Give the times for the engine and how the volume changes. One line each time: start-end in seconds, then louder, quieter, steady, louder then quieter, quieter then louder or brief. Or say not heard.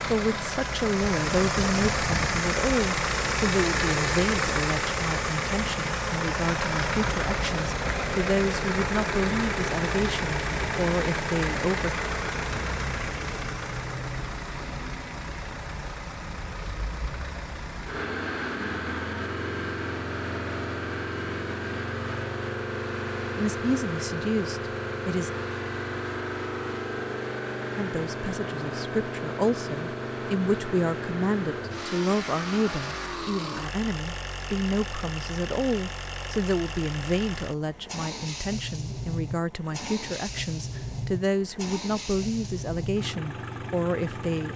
0.0-44.5 quieter.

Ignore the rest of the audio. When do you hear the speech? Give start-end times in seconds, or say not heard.
0.1-12.0, 23.4-25.3, 27.8-44.5.